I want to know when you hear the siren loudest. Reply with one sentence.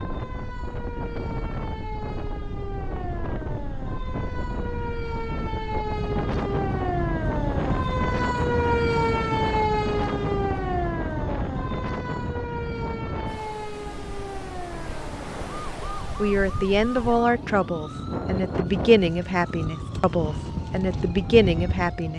The volume of the siren peaks at 9 seconds.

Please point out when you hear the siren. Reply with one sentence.
The siren can be heard from 0.0 to 22.1 s.